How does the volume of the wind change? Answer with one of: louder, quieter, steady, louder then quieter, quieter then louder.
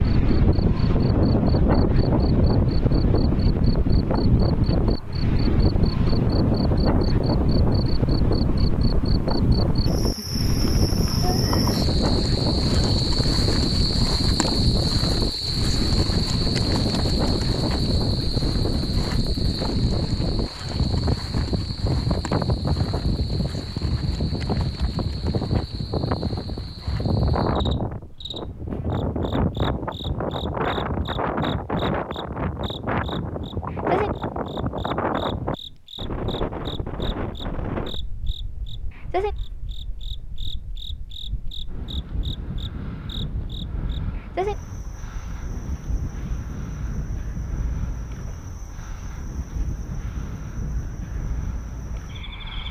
quieter.